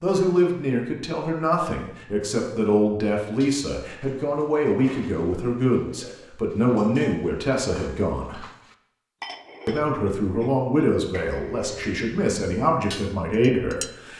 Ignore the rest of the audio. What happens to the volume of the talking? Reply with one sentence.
The volume of the talking stays about the same.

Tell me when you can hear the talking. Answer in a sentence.
The talking can be heard from 0.0 to 8.4 s and from 9.7 to 14.1 s.